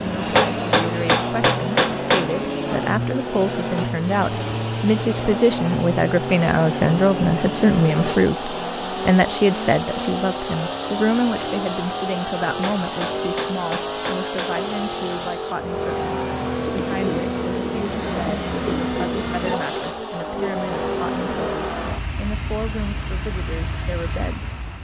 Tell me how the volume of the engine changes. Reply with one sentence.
The volume of the engine stays about the same.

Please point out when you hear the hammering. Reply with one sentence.
You can hear the hammering from 0.3 to 2.3 s and from 12.6 to 14.6 s.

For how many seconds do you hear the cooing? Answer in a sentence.
You can hear the cooing for 3 seconds altogether.